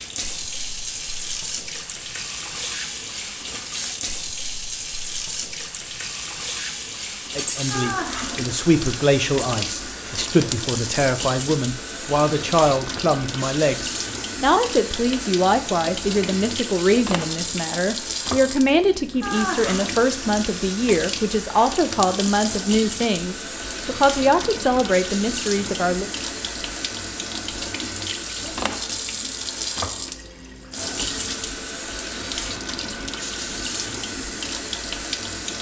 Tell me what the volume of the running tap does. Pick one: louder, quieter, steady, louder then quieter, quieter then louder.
steady.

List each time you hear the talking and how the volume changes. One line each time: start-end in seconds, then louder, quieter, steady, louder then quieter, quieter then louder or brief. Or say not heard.
7.3-26.1 steady.